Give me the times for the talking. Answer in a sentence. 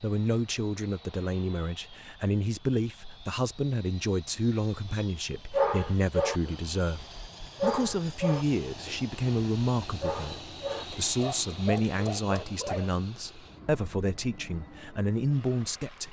The talking can be heard from 0.0 to 16.0 s.